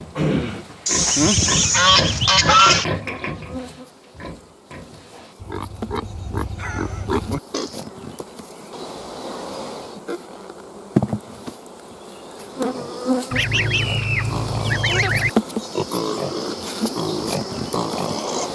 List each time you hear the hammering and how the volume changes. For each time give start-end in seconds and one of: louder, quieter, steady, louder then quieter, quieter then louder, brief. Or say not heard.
not heard.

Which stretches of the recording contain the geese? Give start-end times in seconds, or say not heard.
0.8-2.9, 13.3-15.3.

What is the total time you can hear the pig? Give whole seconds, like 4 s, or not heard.
14 s.